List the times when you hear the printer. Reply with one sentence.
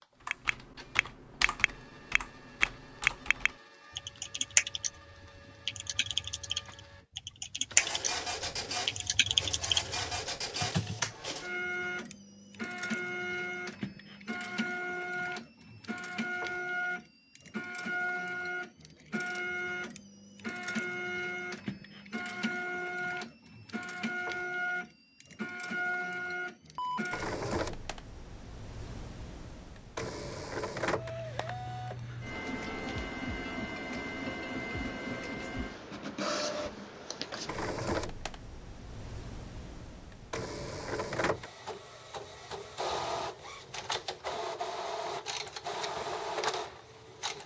The printer can be heard from 0.0 to 47.4 s.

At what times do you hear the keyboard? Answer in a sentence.
You can hear the keyboard from 0.2 to 11.3 s.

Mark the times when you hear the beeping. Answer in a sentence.
The beeping can be heard from 26.8 to 27.6 s.